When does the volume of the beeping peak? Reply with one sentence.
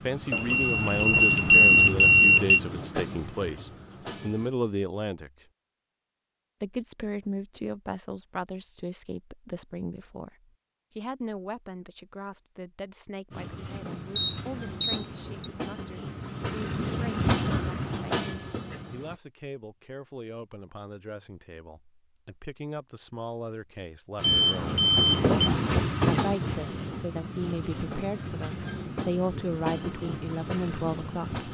The volume of the beeping peaks at 2 seconds.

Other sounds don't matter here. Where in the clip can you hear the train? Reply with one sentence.
You can hear the train from 0.0 to 4.5 s, from 13.3 to 19.2 s and from 24.1 to 31.4 s.